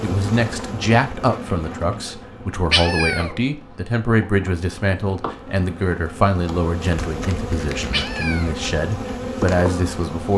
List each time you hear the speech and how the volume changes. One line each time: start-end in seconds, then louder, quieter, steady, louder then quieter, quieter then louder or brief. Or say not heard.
0.0-10.3 steady.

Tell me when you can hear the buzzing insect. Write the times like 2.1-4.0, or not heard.
0.0-10.3.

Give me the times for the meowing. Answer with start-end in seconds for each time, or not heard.
2.7-3.4, 7.9-8.6.